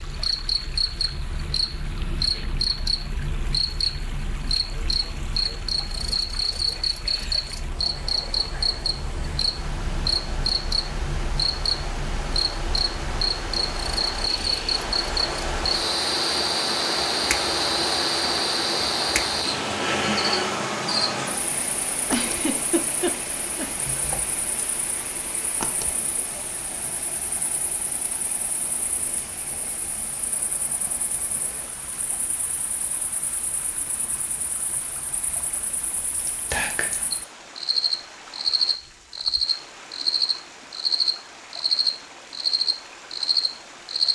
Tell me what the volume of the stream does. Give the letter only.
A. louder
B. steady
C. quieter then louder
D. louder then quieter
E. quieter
D.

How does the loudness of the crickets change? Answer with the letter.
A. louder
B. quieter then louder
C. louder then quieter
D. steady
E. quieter
B.